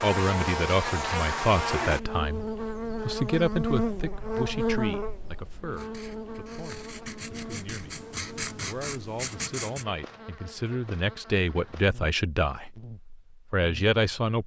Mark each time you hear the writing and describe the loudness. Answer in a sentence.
The writing can be heard from 5.7 to 9.8 s, getting louder.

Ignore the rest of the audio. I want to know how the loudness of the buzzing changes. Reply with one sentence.
The volume of the buzzing goes down.